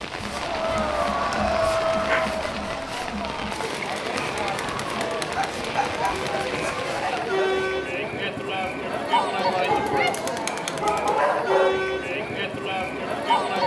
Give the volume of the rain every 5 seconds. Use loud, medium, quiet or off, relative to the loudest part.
loud, loud, off.